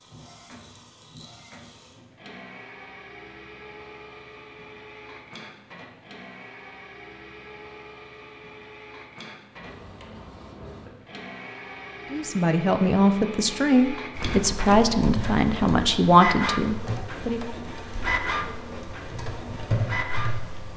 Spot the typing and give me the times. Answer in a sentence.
You can hear the typing from 14.2 to 20.7 s.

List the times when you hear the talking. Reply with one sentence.
The talking can be heard from 12.1 to 17.4 s.